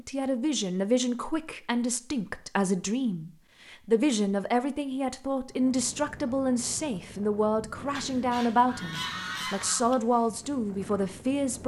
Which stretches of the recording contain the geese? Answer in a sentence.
You can hear the geese from 8.0 to 9.9 s.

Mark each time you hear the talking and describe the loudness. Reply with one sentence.
You can hear the talking from 0.0 to 11.6 s, at a steady volume.